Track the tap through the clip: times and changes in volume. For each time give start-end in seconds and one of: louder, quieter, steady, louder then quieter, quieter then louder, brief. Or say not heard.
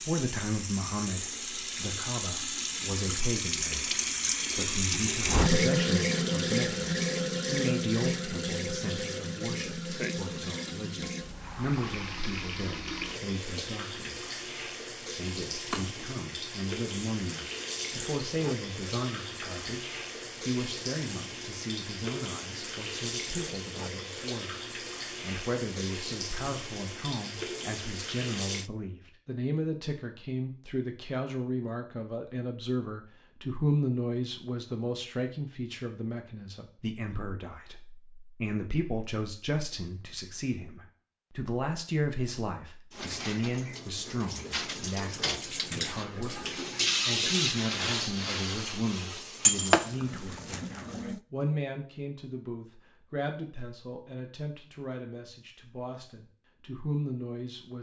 0.0-28.7 quieter
42.9-51.2 louder then quieter.